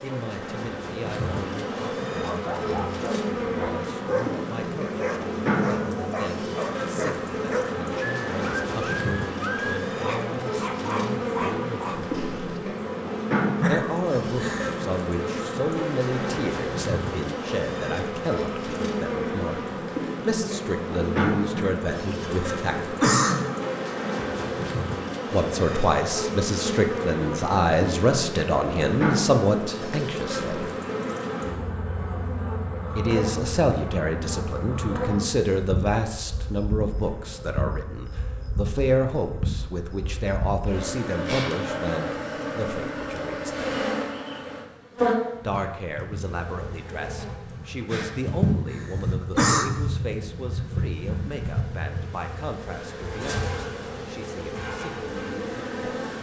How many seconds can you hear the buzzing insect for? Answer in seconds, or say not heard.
56 s.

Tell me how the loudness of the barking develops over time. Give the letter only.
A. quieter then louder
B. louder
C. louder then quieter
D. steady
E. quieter
D.